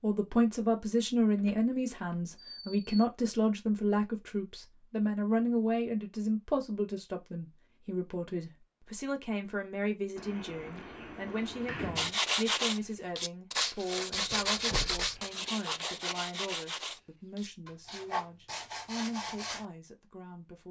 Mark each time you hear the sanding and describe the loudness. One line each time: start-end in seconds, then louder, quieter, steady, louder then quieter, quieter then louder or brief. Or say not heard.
11.9-19.6 quieter.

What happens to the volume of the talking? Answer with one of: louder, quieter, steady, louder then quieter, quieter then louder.
quieter.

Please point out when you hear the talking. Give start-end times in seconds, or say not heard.
0.0-20.6.